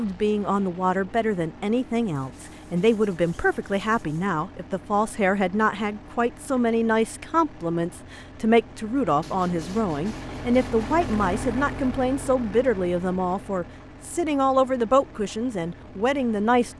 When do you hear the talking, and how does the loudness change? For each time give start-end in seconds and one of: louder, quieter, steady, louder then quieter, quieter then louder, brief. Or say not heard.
0.0-16.7 steady.